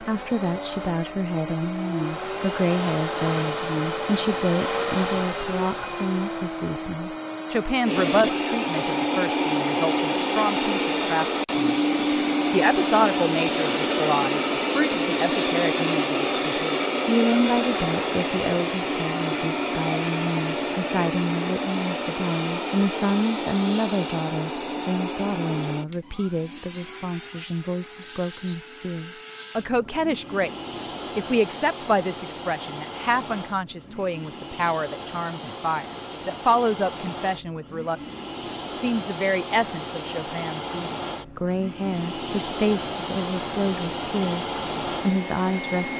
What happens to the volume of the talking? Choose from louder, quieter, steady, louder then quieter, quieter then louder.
steady.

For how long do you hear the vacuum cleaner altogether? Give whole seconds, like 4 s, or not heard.
46 s.